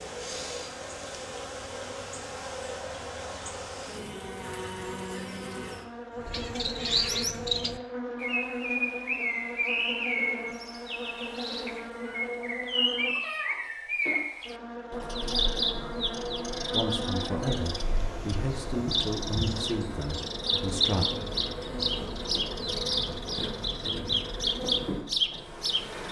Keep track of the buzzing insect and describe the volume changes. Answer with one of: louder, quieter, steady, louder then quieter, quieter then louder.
steady.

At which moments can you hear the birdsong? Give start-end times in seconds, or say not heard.
6.2-26.0.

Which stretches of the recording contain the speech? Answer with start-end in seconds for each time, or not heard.
16.7-21.1.